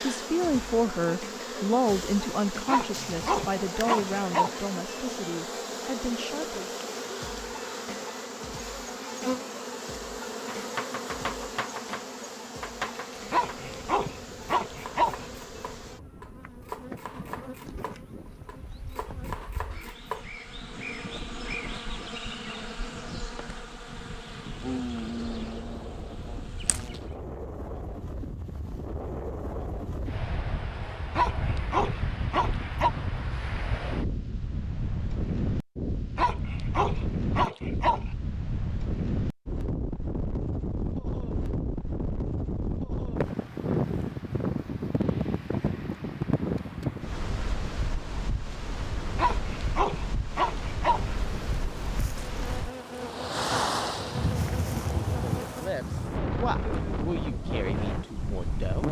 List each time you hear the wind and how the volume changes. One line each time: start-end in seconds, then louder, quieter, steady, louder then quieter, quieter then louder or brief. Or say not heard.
13.3-58.8 louder.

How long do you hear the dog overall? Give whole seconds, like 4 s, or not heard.
9 s.